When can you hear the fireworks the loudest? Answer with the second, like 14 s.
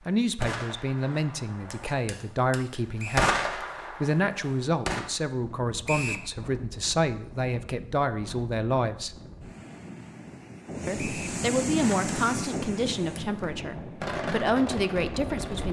3 s.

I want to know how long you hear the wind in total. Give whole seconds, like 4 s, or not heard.
10 s.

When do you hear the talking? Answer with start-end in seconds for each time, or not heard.
0.1-9.2, 10.8-15.6.